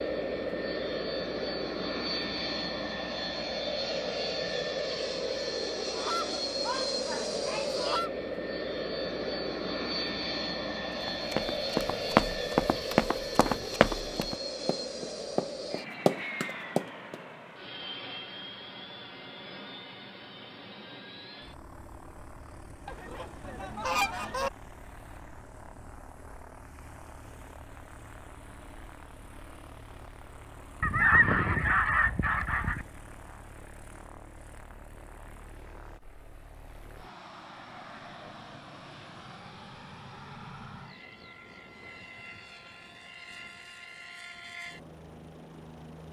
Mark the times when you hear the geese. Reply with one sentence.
The geese can be heard from 5.8 to 8.1 s, from 22.9 to 24.5 s and from 30.8 to 32.9 s.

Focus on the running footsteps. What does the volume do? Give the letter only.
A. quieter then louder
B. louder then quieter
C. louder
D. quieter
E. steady
A.